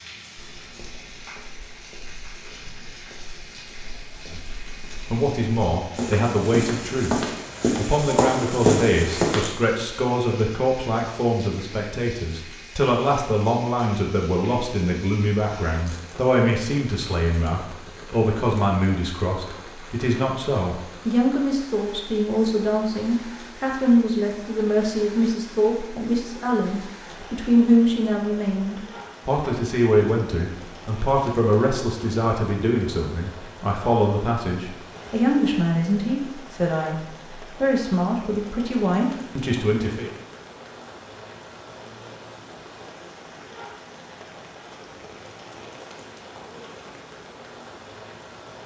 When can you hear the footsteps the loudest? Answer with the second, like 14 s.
9 s.